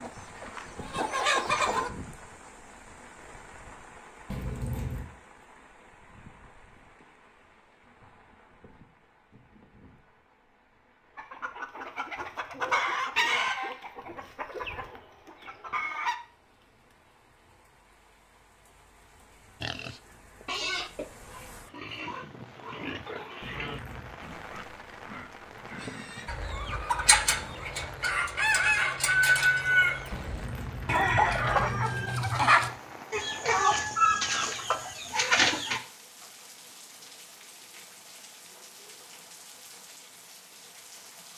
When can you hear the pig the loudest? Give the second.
21 s.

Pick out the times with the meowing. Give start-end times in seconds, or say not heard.
4.3-5.1, 23.4-24.2, 30.1-31.9.